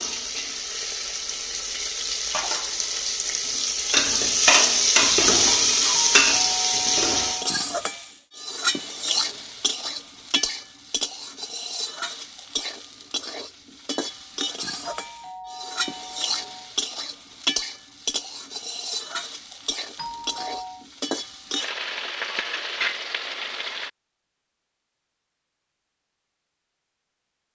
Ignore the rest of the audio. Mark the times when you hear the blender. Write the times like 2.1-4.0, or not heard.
not heard.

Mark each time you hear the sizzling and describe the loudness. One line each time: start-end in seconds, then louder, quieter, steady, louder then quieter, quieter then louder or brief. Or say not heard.
0.0-23.9 quieter.